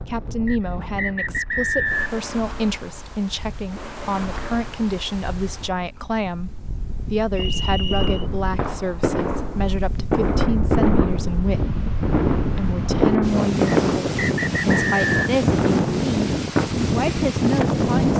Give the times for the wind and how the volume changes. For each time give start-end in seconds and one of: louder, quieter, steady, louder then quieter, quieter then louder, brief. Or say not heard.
0.0-18.1 louder.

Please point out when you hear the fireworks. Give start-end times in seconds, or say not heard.
8.0-16.7.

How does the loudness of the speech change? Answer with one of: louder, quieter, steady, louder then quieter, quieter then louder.
steady.